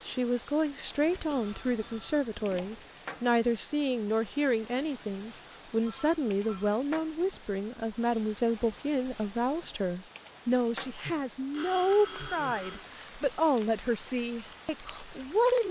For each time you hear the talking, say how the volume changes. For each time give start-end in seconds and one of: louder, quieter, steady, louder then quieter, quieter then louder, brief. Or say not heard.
0.0-15.6 steady.